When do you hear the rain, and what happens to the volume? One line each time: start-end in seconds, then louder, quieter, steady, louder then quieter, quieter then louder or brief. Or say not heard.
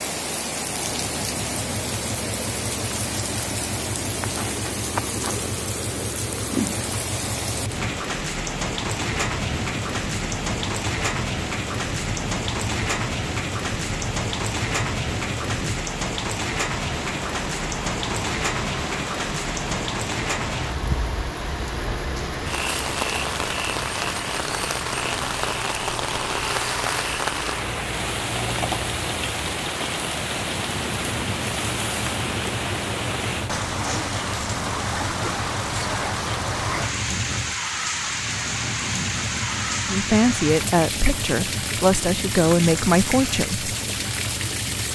0.0-44.9 steady.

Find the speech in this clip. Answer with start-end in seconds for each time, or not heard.
39.9-43.6.